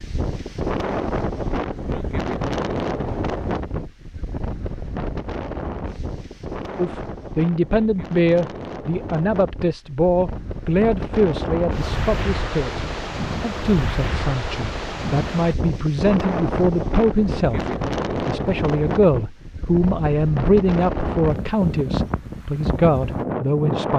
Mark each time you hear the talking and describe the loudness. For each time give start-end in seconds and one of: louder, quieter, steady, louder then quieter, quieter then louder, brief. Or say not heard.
6.8-23.9 steady.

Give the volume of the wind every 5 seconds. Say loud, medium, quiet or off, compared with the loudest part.
loud, medium, loud, loud, loud.